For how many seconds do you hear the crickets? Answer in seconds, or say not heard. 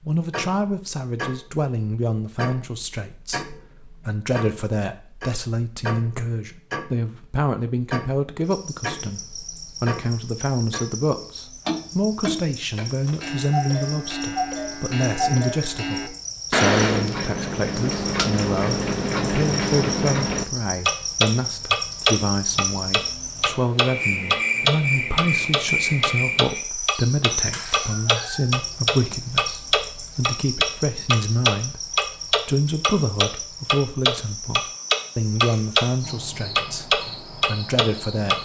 30 s.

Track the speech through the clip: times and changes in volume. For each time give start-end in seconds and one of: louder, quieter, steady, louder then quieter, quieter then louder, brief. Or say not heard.
0.1-38.4 steady.